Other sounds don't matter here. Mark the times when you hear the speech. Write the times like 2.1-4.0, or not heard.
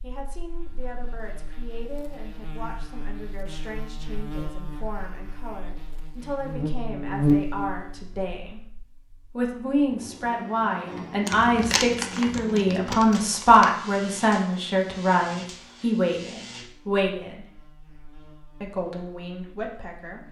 0.0-8.6, 9.3-17.4, 18.6-20.2.